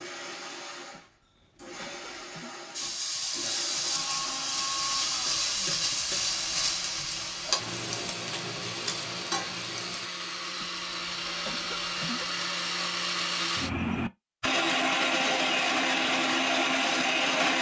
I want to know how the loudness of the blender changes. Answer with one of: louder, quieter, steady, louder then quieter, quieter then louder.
louder.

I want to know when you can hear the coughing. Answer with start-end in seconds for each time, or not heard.
0.9-2.6, 10.6-12.3.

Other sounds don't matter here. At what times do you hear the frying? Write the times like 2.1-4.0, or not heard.
2.7-10.1.